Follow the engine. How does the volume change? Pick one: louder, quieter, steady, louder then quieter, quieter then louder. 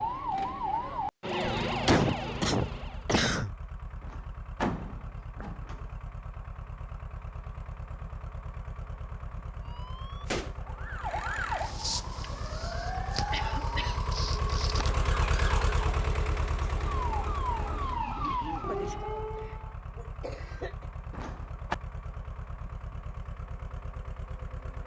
louder then quieter.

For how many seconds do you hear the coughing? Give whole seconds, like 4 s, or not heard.
4 s.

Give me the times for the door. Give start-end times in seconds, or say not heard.
4.0-5.8, 21.1-21.8.